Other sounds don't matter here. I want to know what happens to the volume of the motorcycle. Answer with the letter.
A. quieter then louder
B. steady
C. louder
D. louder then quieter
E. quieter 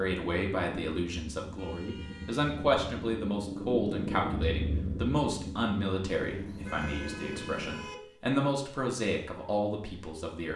D.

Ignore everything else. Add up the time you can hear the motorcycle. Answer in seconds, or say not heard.
8 s.